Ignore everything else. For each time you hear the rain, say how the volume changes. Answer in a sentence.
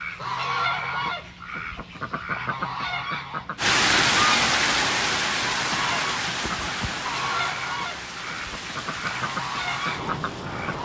The rain can be heard from 3.5 to 10.7 s, getting quieter.